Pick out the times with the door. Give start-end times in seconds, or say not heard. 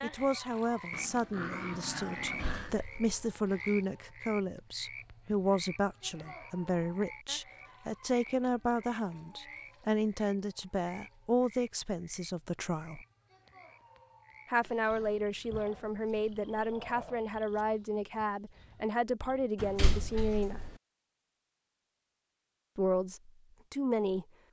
2.2-3.3, 19.6-20.7.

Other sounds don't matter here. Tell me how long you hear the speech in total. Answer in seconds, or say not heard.
21 s.